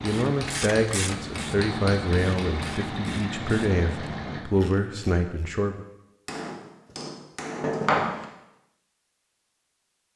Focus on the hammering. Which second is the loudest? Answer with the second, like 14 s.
8 s.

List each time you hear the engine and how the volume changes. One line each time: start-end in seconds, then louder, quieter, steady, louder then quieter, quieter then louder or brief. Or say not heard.
0.0-4.4 louder.